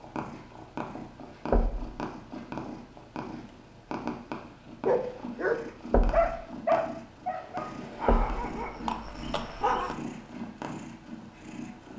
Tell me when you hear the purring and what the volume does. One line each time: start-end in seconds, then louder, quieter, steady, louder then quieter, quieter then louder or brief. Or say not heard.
0.0-11.9 steady.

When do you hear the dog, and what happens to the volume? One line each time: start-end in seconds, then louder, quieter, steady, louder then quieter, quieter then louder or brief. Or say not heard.
4.8-9.9 quieter.